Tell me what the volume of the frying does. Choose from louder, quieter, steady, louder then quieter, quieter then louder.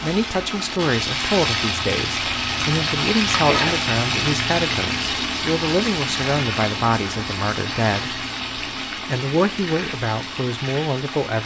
quieter.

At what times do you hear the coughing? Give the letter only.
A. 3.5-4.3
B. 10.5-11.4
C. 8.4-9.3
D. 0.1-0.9
A.